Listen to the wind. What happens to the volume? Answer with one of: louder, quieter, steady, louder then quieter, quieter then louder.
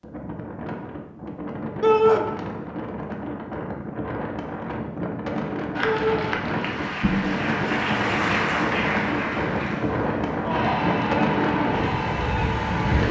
louder.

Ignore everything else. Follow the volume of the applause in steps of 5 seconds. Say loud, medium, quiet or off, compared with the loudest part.
off, loud, loud.